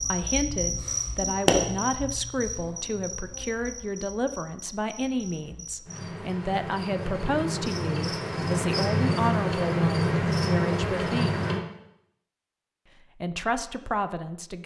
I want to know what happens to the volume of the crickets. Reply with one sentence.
The volume of the crickets goes down, then up.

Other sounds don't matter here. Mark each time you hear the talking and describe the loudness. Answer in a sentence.
You can hear the talking from 0.0 to 11.4 s, at a steady volume; and briefly from 13.2 to 14.6 s.